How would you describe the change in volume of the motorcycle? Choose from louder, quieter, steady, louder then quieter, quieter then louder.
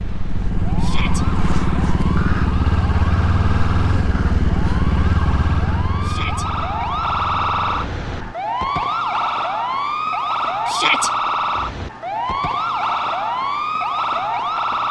quieter.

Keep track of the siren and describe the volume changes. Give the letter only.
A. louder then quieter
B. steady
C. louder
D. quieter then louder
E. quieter
C.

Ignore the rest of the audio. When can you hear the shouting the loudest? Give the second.
11 s.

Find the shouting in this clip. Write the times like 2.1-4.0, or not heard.
0.8-1.2, 6.0-6.5, 10.7-11.1.